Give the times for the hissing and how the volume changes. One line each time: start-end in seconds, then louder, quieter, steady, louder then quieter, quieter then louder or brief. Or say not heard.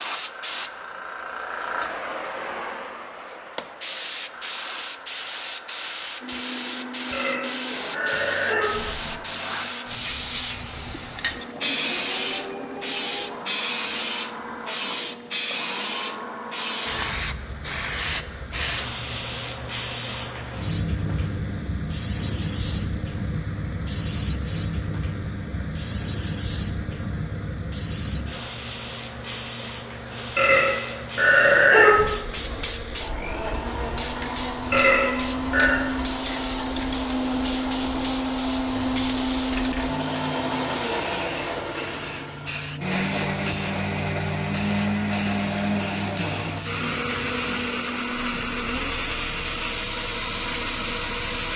0.0-51.5 quieter.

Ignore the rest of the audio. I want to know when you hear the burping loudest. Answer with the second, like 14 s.
32 s.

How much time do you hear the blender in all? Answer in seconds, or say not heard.
45 s.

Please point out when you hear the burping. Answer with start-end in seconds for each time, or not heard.
7.1-9.2, 30.4-32.1, 34.7-35.8.